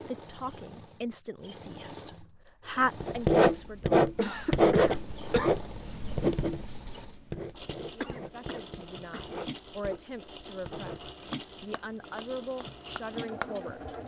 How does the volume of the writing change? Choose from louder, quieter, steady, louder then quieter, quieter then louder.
quieter.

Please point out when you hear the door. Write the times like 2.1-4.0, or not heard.
not heard.